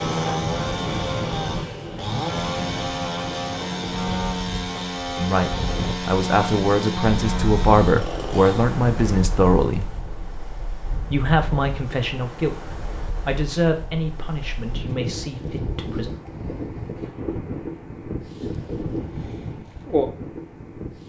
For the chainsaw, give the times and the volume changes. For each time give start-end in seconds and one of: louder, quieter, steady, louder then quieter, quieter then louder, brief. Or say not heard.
0.0-8.8 steady.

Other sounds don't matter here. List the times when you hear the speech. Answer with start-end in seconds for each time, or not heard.
5.2-9.9, 11.1-16.1.